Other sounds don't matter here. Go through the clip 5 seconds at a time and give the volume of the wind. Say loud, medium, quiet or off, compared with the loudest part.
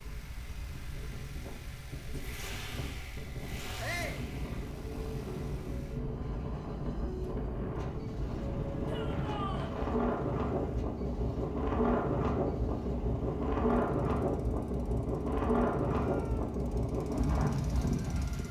quiet, medium, loud, loud.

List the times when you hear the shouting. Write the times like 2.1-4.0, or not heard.
3.8-4.2, 8.8-9.8, 15.9-16.6.